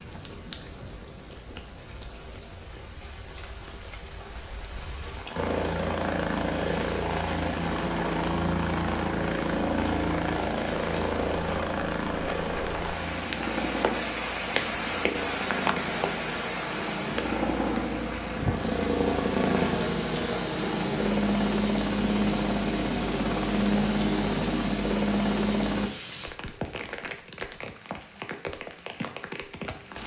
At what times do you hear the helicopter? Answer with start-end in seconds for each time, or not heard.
5.3-25.9.